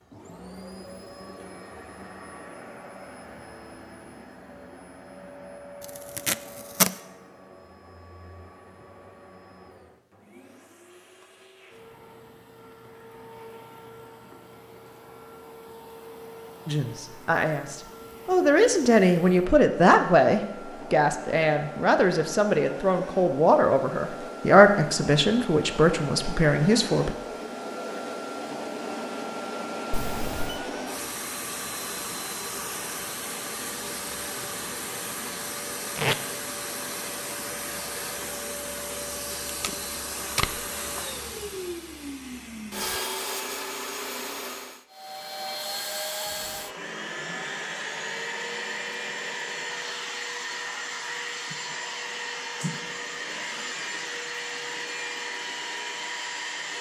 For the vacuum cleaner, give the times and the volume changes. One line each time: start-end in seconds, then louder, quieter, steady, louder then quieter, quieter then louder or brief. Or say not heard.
0.0-56.7 louder.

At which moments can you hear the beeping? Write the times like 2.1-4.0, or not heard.
29.9-30.6.